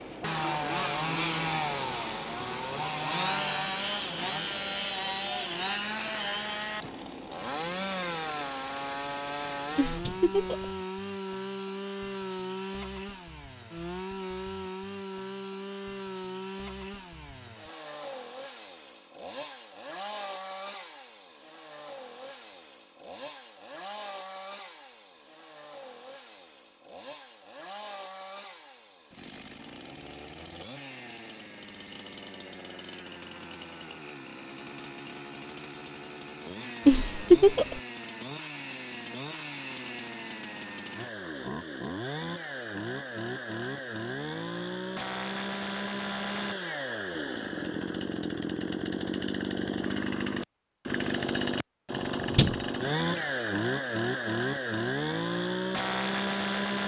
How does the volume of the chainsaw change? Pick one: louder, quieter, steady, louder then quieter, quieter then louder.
quieter then louder.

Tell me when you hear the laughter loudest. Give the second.
37 s.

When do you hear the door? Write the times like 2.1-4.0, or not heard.
9.6-10.3, 52.0-53.2.